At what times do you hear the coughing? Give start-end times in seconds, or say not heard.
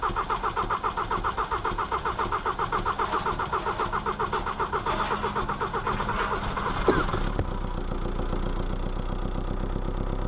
6.8-7.5.